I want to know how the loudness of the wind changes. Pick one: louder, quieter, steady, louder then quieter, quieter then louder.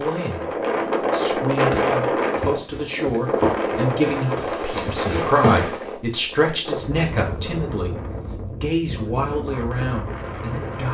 quieter.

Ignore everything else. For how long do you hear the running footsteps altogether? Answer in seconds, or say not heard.
4 s.